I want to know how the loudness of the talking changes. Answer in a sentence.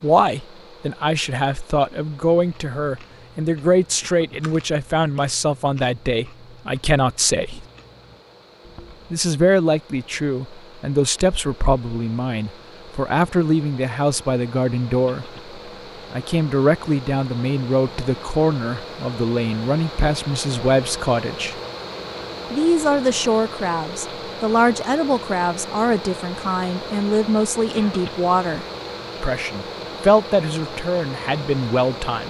The volume of the talking stays about the same.